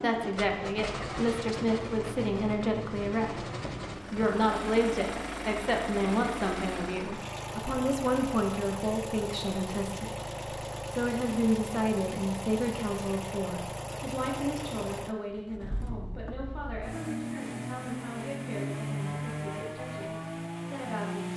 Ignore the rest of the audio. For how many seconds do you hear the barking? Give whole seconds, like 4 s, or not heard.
not heard.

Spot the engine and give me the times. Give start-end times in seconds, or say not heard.
0.0-21.3.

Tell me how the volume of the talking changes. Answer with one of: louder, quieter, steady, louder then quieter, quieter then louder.
quieter.